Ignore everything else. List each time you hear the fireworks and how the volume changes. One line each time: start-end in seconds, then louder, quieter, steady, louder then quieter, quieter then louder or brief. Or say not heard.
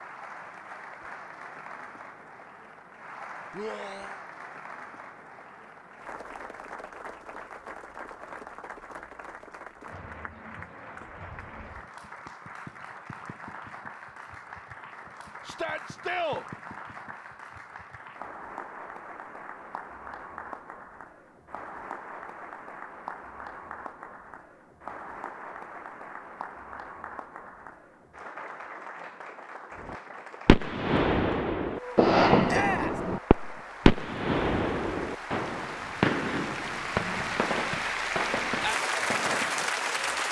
29.9-39.7 quieter.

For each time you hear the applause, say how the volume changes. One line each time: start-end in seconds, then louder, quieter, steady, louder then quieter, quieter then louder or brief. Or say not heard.
0.0-40.2 louder.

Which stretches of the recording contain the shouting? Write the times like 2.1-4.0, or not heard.
3.5-4.2, 15.4-16.4, 32.5-33.0.